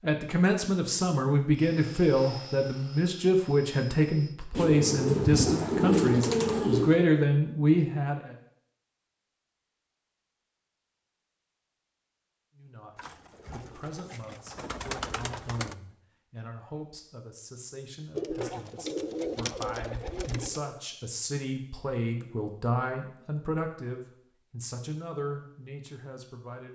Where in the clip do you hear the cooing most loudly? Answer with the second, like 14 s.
6 s.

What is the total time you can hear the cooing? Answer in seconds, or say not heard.
8 s.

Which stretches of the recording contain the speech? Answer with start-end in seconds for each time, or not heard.
0.0-8.3, 12.6-26.6.